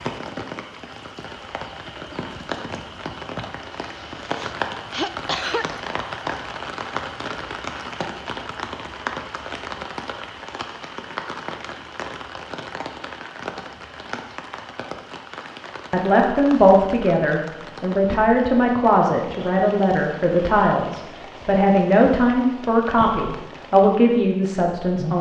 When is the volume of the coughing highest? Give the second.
5 s.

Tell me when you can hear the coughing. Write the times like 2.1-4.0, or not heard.
3.8-5.7.